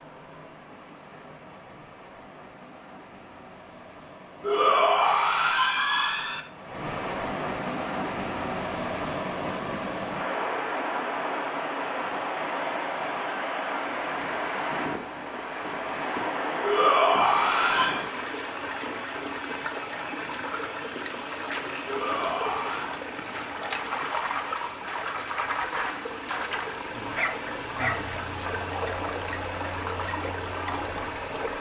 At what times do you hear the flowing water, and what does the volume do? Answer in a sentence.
You can hear the flowing water from 0.0 to 31.5 s, getting louder.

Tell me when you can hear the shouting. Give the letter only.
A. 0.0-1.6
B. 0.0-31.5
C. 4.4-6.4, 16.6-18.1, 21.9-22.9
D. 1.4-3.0
C.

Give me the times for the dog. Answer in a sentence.
You can hear the dog from 26.9 to 28.4 s.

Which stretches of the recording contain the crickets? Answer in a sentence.
You can hear the crickets from 13.9 to 31.5 s.